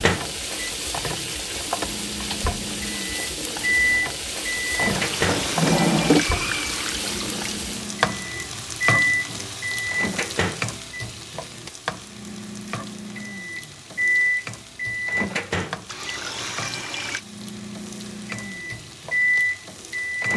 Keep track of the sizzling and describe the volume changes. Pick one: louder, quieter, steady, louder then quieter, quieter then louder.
quieter.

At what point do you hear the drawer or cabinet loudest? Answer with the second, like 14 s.
6 s.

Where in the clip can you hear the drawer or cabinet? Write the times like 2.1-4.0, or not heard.
4.8-6.2.